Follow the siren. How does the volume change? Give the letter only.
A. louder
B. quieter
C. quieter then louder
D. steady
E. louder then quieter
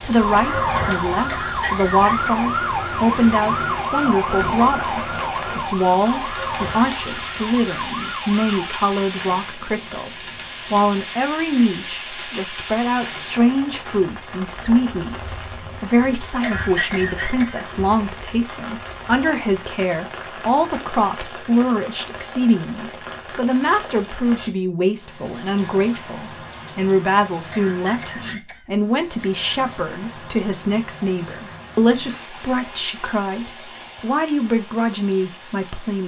B.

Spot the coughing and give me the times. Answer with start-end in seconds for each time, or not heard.
1.2-2.3, 16.4-17.6, 27.5-28.6.